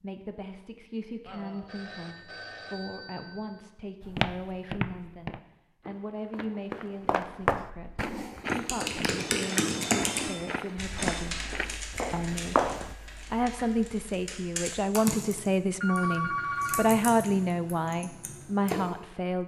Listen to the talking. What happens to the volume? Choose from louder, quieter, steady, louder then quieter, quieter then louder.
louder.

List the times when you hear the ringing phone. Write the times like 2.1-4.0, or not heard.
1.2-3.6, 9.2-11.3, 15.8-16.9.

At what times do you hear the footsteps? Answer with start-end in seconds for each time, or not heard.
4.0-12.9.